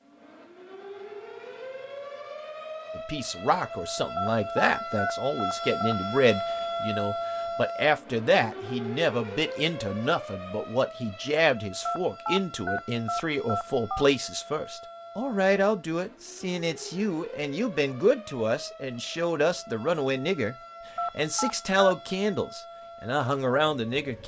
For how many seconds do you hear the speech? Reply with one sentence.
You can hear the speech for 21 seconds altogether.